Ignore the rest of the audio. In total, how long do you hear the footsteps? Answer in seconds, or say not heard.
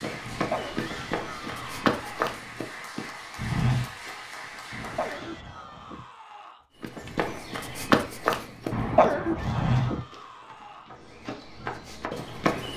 11 s.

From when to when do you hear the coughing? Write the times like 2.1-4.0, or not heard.
0.2-1.6, 4.7-6.0, 8.7-10.1.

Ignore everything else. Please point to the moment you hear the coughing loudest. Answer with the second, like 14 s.
9 s.